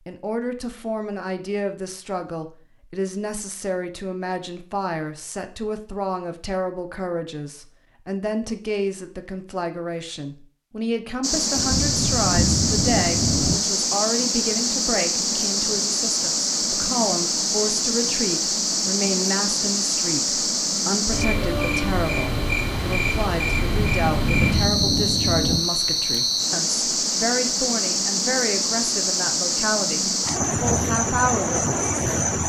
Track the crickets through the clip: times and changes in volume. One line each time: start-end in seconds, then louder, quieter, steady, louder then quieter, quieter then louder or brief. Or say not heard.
11.2-32.4 steady.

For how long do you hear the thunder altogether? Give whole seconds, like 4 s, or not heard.
4 s.